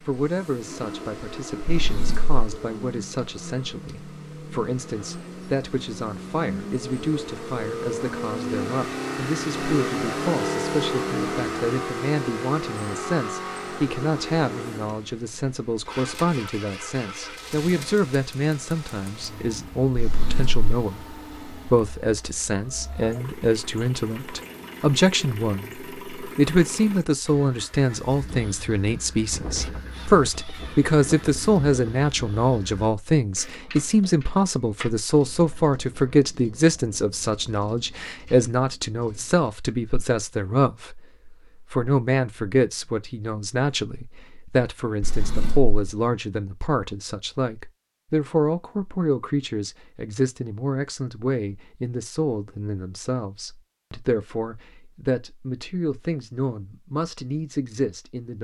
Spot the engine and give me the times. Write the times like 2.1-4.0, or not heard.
0.0-32.9.